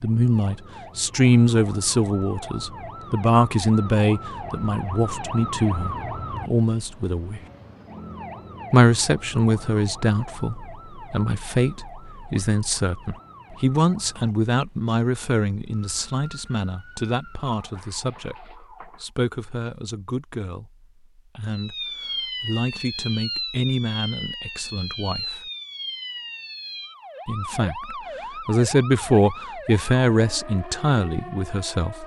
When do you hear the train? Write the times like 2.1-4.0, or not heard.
not heard.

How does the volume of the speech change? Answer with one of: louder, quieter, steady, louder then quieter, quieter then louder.
quieter then louder.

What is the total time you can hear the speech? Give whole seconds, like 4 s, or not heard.
28 s.